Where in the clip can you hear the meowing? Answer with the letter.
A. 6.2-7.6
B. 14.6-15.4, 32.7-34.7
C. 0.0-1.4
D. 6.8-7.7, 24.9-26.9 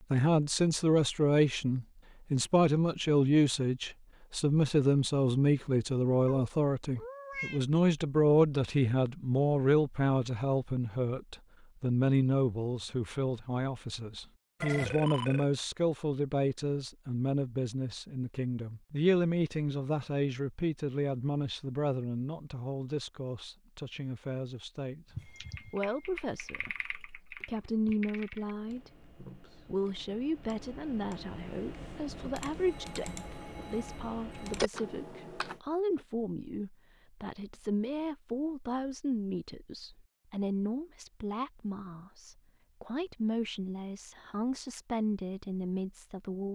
A.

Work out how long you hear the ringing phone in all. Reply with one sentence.
You can hear the ringing phone for 3 seconds altogether.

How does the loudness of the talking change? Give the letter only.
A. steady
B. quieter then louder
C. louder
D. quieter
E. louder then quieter
D.